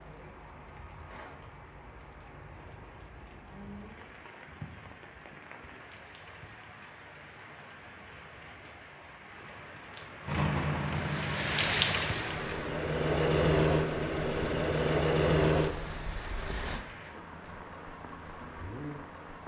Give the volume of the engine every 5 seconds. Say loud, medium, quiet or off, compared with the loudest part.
off, off, loud, loud.